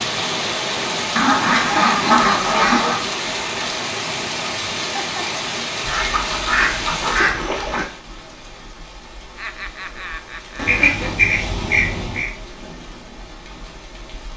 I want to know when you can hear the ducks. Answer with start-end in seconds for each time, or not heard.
1.1-3.0, 5.8-7.8, 10.6-12.3.